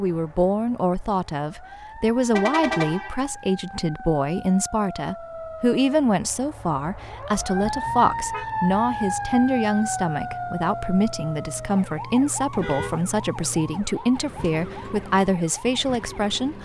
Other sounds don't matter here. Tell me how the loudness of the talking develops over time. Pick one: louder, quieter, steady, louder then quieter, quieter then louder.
steady.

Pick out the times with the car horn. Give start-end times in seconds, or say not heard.
2.3-3.3, 7.6-8.4, 12.5-13.0.